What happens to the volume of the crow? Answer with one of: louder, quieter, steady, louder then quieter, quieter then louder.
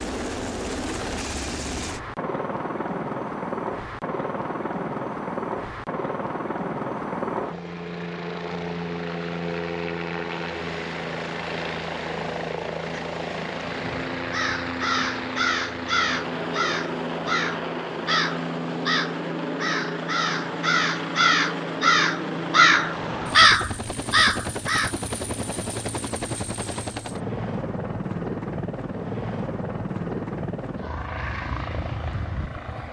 louder.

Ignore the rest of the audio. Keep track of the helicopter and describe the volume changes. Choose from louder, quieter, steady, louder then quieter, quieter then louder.
steady.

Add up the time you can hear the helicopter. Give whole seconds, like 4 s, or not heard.
33 s.